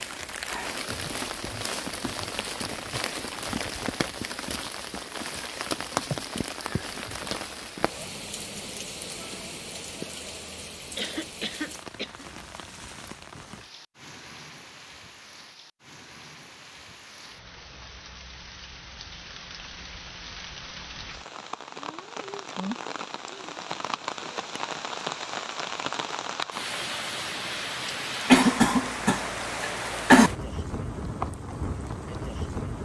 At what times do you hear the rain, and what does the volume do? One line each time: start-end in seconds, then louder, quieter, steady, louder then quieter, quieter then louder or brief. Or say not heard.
0.0-32.7 quieter then louder.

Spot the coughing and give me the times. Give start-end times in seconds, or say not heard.
10.9-12.2, 28.3-30.3.